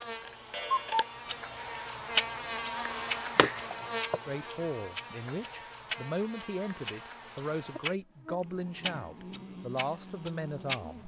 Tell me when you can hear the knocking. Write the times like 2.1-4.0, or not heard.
3.4-4.2.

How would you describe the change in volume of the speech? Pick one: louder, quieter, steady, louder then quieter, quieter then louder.
steady.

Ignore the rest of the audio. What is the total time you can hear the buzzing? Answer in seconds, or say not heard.
11 s.